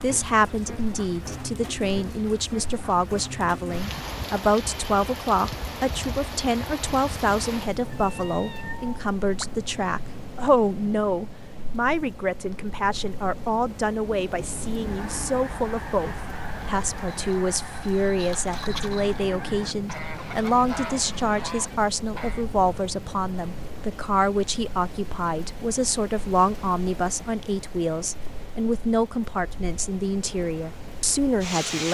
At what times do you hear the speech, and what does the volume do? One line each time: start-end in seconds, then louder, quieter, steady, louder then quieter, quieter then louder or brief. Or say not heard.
0.0-31.8 steady.